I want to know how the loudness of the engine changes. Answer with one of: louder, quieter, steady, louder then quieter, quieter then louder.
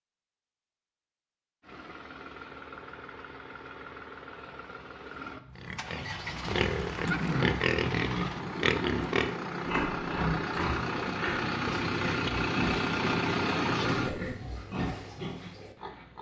louder.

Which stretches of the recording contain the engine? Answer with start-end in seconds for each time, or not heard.
1.6-14.4.